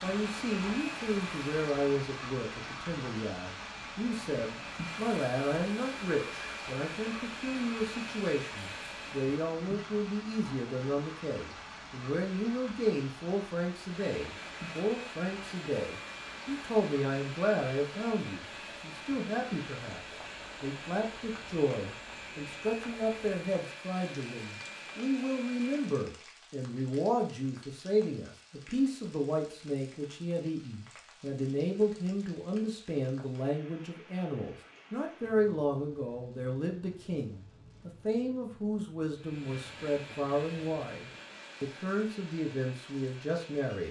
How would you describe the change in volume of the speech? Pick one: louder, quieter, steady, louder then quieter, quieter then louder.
steady.